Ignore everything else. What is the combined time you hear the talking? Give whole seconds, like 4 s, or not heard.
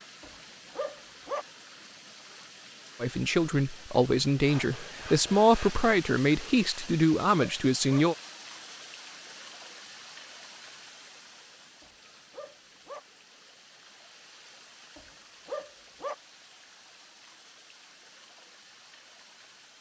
5 s.